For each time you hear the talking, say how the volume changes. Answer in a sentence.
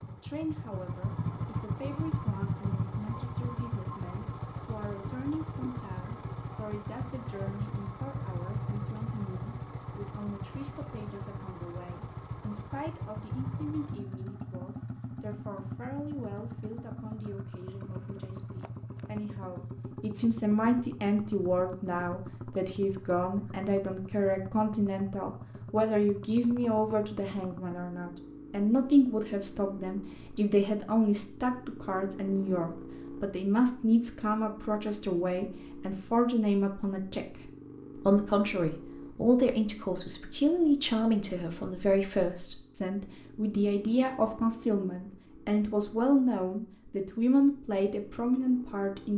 You can hear the talking from 0.0 to 49.1 s, getting louder.